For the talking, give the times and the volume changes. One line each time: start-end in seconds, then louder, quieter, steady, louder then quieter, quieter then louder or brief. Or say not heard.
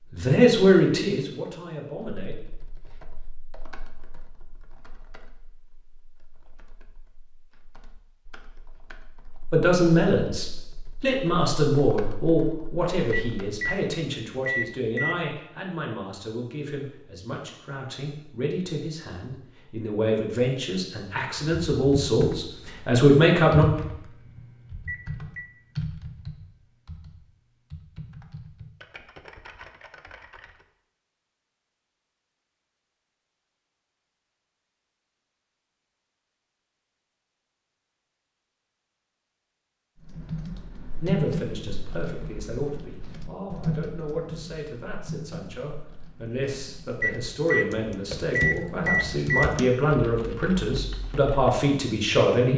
0.1-2.4 brief
9.5-23.6 quieter then louder
41.0-52.5 louder.